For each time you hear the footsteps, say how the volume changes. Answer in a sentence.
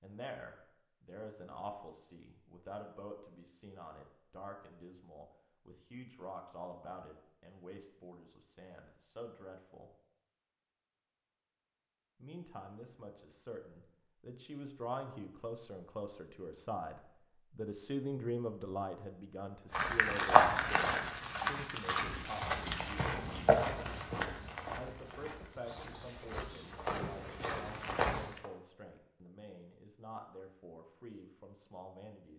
The footsteps can be heard from 19.7 to 28.5 s, getting quieter then louder.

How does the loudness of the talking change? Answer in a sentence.
The loudness of the talking goes up, then down.